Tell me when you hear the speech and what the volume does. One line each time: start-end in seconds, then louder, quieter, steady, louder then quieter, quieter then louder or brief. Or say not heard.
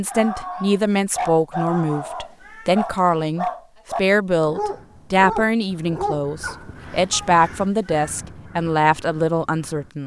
0.0-10.0 steady.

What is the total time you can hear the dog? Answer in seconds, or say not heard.
7 s.